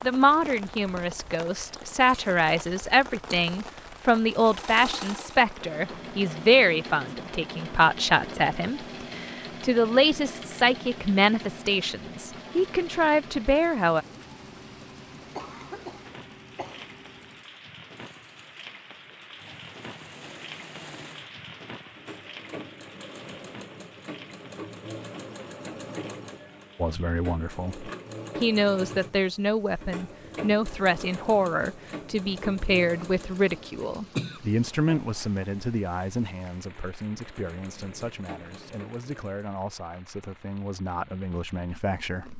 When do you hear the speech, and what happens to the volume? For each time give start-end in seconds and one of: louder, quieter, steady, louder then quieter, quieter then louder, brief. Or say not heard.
0.0-14.1 steady
26.8-42.3 quieter.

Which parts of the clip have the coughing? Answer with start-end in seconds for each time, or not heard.
15.3-16.9, 34.1-35.0.